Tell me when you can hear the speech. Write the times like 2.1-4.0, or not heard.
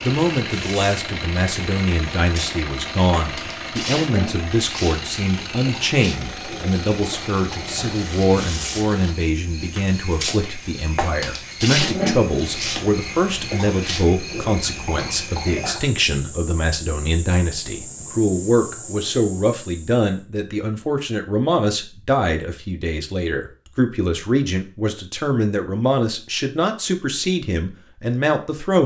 0.0-28.8.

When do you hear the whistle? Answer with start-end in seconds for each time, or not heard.
not heard.